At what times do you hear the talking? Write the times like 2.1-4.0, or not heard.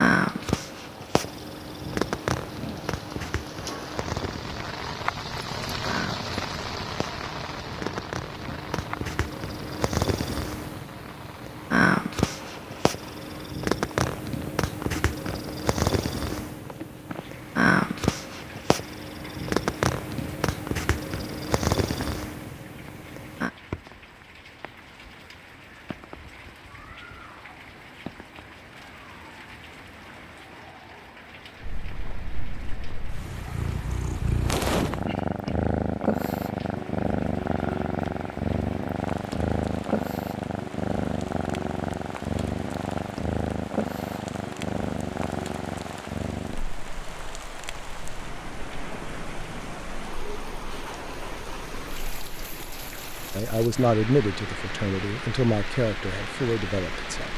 53.4-57.3.